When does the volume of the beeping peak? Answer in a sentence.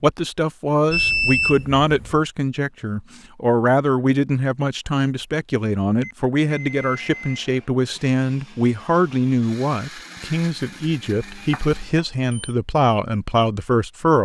The loudest moment of the beeping is at 1 second.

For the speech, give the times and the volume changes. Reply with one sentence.
You can hear the speech from 0.0 to 14.2 s, at a steady volume.